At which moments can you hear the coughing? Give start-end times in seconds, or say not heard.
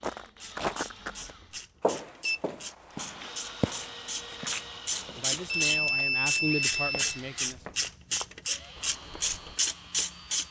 not heard.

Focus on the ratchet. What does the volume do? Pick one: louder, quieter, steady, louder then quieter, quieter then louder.
louder.